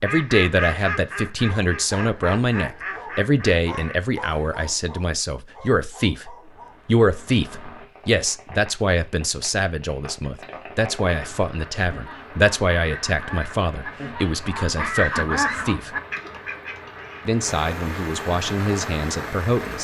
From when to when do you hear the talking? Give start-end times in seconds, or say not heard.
0.0-15.9, 17.2-19.7.